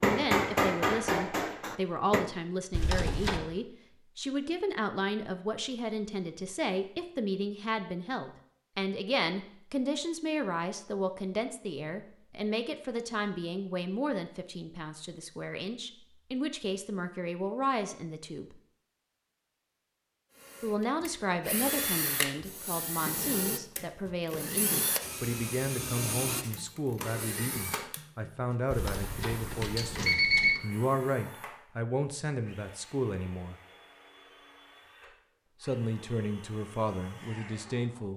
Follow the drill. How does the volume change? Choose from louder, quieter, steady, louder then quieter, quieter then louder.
quieter.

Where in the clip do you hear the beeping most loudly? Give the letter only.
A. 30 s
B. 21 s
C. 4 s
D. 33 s
A.